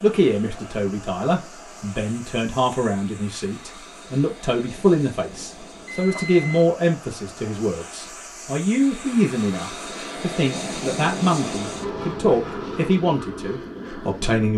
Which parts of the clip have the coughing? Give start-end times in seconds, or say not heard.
not heard.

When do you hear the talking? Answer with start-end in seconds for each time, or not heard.
0.0-14.5.